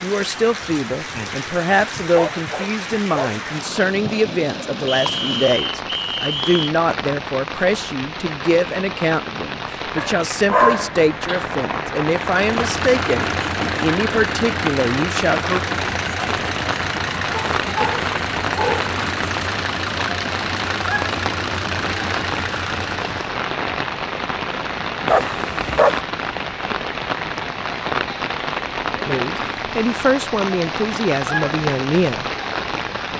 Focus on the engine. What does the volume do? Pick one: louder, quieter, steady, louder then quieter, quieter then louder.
steady.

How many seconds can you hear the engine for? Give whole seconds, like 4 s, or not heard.
11 s.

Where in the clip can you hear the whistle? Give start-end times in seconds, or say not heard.
4.8-6.7.